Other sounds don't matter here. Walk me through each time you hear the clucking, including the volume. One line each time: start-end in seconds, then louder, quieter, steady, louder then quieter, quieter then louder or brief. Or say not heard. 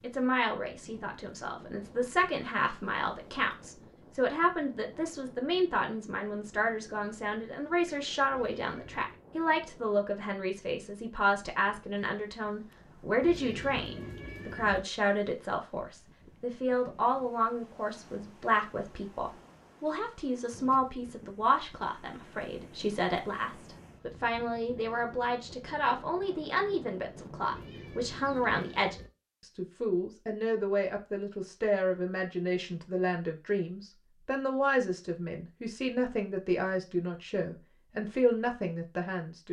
not heard.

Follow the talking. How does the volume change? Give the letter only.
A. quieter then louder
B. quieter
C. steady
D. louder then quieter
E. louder
C.